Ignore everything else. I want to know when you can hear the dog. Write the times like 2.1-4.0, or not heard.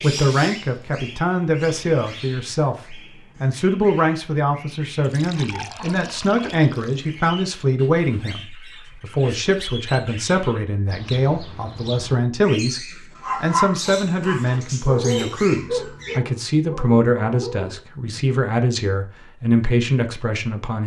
13.2-18.1.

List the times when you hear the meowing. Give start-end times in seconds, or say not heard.
not heard.